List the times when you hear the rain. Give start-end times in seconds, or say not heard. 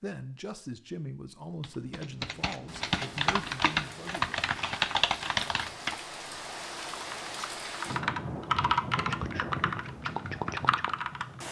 2.5-11.4.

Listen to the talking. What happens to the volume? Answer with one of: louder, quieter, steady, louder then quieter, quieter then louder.
steady.